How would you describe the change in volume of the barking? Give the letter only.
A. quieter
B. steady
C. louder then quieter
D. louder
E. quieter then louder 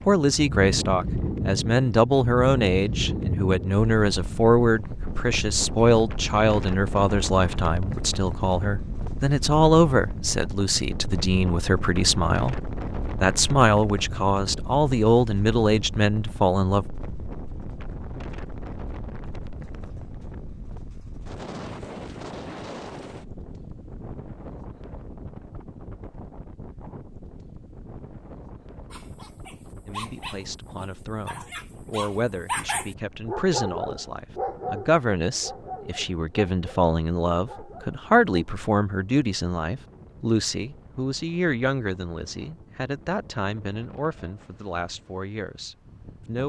C.